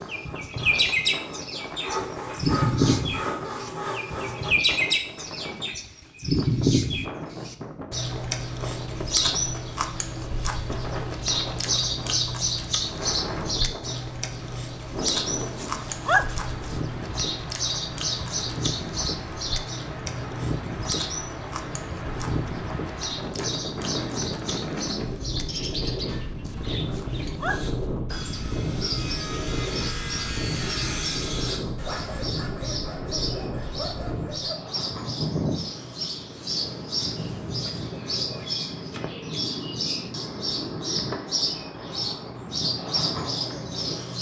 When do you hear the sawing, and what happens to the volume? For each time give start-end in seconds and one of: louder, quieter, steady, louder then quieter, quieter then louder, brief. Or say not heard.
0.0-4.5 louder
27.4-34.5 louder then quieter.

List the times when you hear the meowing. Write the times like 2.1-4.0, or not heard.
not heard.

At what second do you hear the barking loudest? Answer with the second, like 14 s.
16 s.